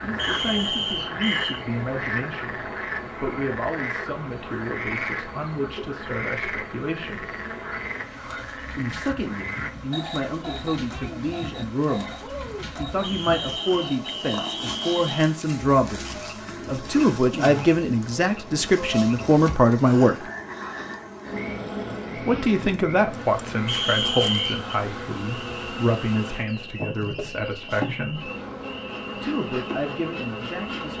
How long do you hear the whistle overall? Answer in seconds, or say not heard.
5 s.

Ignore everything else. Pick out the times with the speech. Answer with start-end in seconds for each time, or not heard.
0.0-7.3, 8.8-20.1, 22.1-28.3, 29.1-30.9.